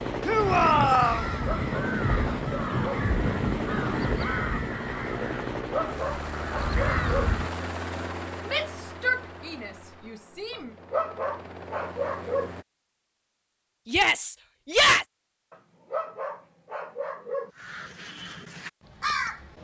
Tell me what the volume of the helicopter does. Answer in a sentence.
The volume of the helicopter goes down.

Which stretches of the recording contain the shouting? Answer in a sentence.
The shouting can be heard from 0.2 to 1.3 s, from 8.4 to 10.7 s and from 13.8 to 15.1 s.